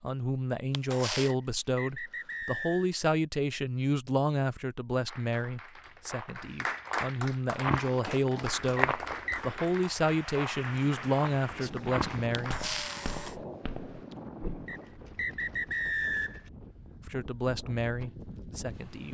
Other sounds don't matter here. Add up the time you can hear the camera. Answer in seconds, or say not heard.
2 s.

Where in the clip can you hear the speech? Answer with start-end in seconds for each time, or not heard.
0.0-12.6, 17.0-19.0.